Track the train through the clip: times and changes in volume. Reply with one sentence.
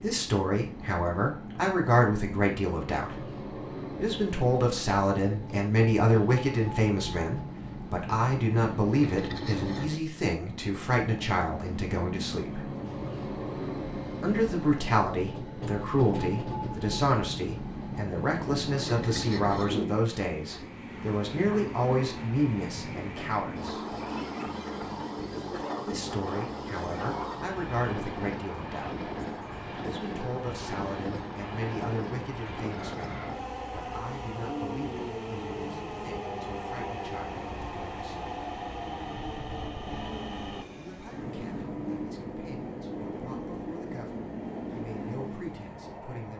The train can be heard from 0.0 to 46.3 s, at a steady volume.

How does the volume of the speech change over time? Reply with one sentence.
The loudness of the speech goes down.